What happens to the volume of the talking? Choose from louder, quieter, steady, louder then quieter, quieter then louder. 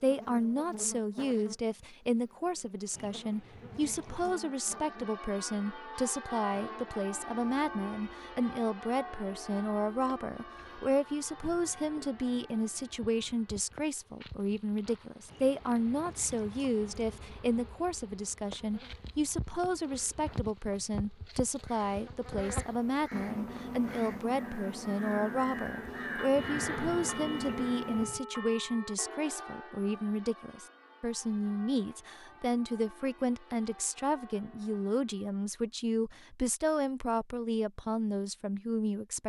steady.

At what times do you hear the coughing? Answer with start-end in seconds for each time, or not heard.
not heard.